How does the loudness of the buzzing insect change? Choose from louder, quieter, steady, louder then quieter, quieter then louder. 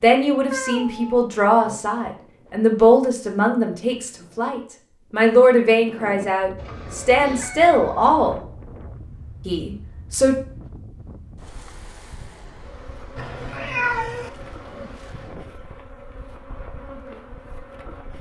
steady.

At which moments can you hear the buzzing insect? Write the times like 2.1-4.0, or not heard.
12.5-18.1.